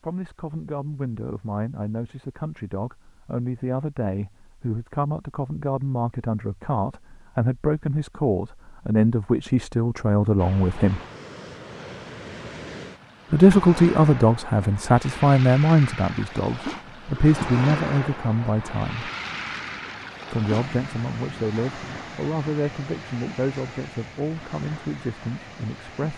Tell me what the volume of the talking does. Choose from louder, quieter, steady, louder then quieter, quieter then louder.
louder then quieter.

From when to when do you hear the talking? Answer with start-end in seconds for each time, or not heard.
0.0-11.0, 13.3-19.1, 20.3-26.1.